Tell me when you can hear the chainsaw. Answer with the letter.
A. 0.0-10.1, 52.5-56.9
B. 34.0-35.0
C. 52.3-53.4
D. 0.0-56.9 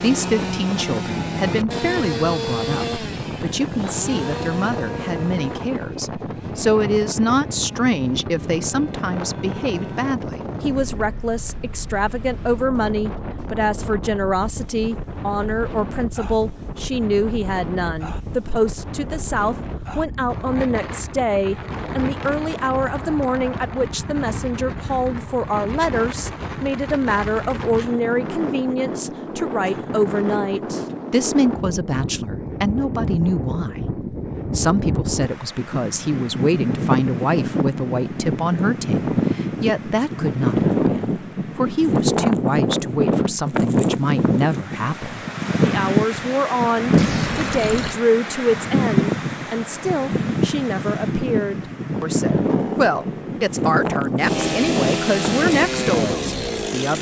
A.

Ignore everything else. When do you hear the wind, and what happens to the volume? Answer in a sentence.
The wind can be heard from 0.0 to 56.6 s, getting louder.